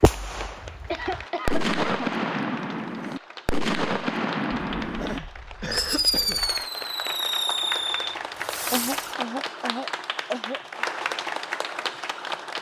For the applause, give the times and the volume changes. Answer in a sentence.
The applause can be heard from 0.0 to 12.5 s, getting louder.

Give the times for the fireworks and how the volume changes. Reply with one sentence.
You can hear the fireworks from 0.0 to 9.2 s, at a steady volume.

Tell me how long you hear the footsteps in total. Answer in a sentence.
The footsteps can't be heard in this clip.